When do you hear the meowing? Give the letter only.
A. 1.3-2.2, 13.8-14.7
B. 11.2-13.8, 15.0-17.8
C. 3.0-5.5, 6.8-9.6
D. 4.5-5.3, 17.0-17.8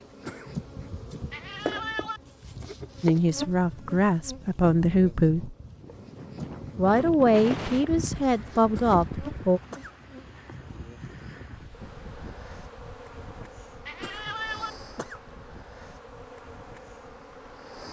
A.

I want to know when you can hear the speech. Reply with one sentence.
You can hear the speech from 3.0 to 5.5 s and from 6.8 to 9.6 s.